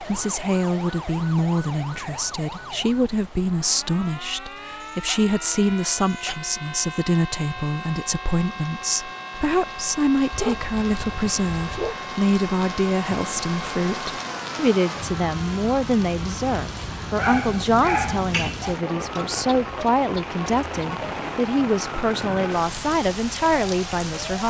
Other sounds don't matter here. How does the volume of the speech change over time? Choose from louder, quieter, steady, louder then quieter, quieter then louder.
steady.